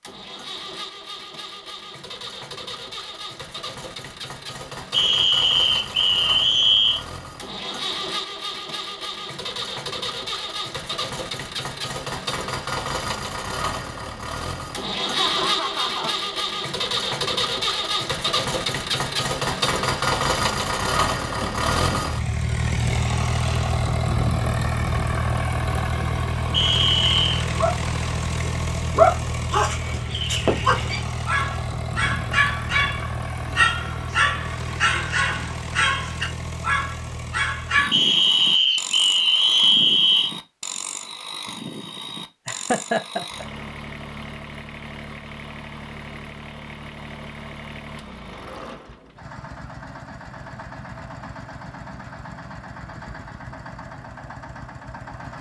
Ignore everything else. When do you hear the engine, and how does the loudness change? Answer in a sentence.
You can hear the engine from 0.0 to 55.3 s, getting louder then quieter.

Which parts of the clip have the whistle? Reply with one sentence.
The whistle can be heard from 4.9 to 7.0 s, from 26.5 to 27.2 s and from 37.9 to 40.3 s.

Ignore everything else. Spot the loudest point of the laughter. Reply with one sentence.
The volume of the laughter peaks at 43 seconds.